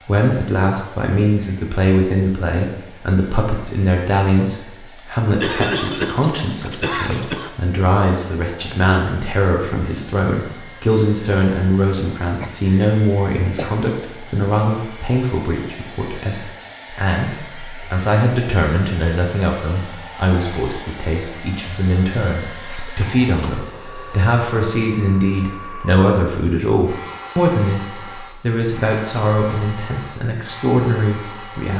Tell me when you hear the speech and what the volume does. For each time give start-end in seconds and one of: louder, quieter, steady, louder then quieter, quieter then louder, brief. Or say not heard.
0.1-31.7 steady.